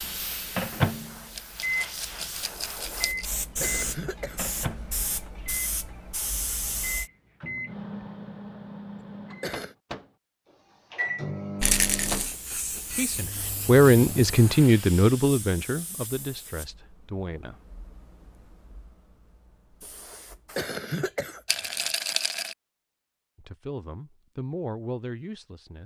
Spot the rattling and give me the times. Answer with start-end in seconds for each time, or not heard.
1.4-3.3, 11.6-12.3, 21.4-22.6.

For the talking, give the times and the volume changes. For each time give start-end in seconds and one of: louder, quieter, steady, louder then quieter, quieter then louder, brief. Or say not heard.
12.8-17.6 quieter
23.4-25.8 brief.